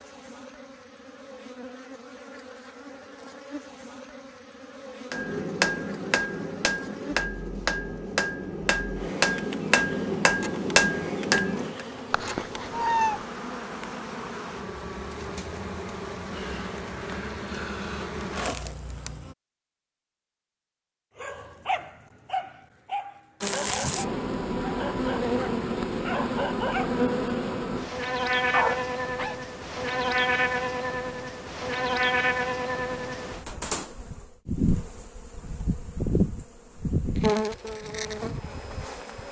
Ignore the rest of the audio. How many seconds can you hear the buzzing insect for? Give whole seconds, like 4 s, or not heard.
35 s.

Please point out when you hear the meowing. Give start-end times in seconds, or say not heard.
12.1-13.2.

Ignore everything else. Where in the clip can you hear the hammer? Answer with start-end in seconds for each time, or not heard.
5.1-11.8.